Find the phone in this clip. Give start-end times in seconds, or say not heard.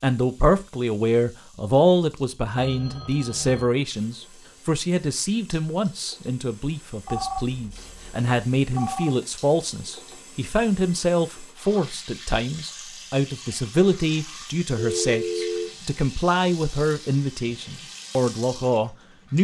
2.5-3.7, 7.0-9.2, 14.8-15.7.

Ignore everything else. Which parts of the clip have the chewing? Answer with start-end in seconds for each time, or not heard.
not heard.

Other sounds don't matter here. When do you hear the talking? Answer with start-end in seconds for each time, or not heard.
0.0-19.3.